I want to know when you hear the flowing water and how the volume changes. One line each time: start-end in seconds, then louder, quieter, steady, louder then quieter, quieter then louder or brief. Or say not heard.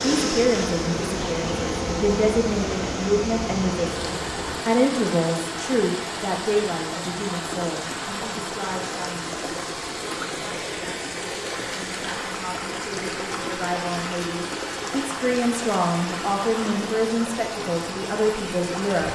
0.0-19.0 steady.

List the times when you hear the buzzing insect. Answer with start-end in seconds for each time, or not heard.
0.0-4.6.